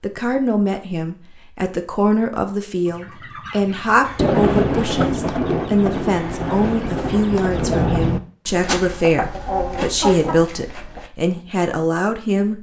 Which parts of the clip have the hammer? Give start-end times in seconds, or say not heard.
not heard.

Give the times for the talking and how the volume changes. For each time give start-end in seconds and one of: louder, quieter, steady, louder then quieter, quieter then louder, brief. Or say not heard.
0.0-12.5 steady.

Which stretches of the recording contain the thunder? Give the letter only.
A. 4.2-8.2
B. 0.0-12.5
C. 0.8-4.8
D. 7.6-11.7
A.